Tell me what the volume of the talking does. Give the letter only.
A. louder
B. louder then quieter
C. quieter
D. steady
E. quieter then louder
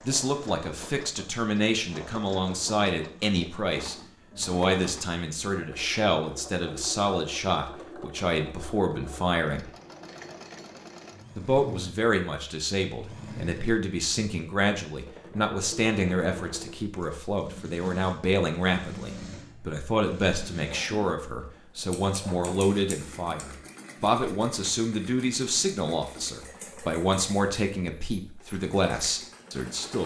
D.